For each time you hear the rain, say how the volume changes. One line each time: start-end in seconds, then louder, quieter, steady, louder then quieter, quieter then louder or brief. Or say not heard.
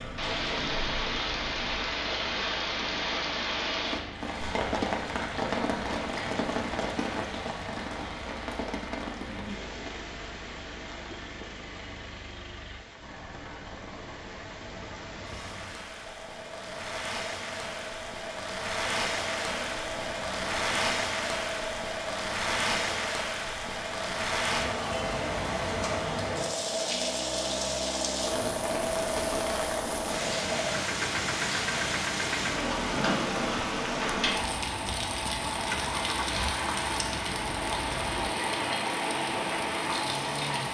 0.0-40.6 quieter then louder.